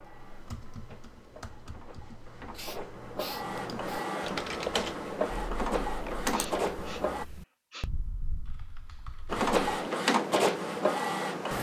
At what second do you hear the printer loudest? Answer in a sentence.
The loudest moment of the printer is at 10 seconds.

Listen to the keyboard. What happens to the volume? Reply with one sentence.
The loudness of the keyboard goes up, then down.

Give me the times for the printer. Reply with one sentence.
The printer can be heard from 0.0 to 7.2 s and from 9.2 to 11.5 s.